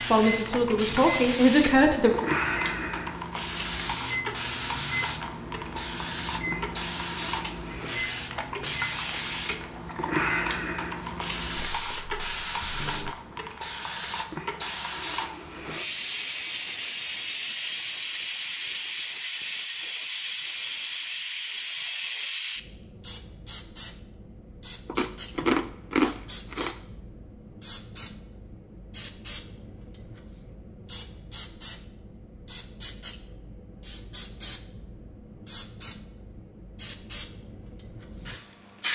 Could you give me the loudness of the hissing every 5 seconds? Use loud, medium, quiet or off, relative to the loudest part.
loud, loud, loud, loud, loud, medium, medium, medium.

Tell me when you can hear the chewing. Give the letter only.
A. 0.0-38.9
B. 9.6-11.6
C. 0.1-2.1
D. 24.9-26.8
D.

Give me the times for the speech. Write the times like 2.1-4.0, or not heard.
0.1-2.1.